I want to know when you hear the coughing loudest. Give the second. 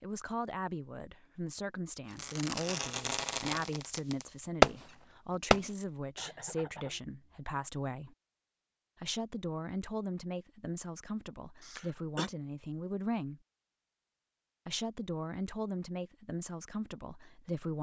12 s.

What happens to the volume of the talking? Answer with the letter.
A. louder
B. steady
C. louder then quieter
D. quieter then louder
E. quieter
B.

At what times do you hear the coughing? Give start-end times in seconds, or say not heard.
6.2-7.0, 11.6-12.3.